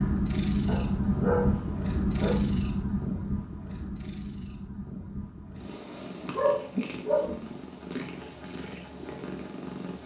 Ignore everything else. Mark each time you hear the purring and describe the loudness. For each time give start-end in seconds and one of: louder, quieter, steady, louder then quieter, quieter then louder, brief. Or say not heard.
0.0-10.0 quieter.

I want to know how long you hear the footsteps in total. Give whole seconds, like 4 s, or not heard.
not heard.